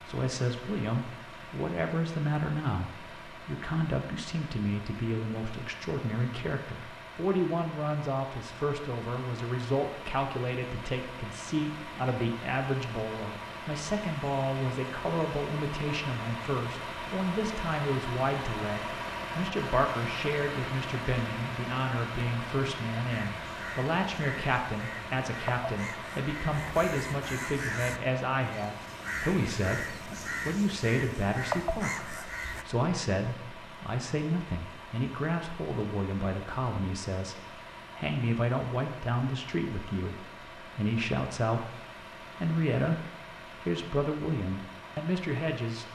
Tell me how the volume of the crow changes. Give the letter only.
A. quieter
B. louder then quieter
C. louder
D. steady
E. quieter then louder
C.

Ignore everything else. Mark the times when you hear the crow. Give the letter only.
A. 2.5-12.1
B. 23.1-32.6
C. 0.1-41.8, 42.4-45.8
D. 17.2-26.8
B.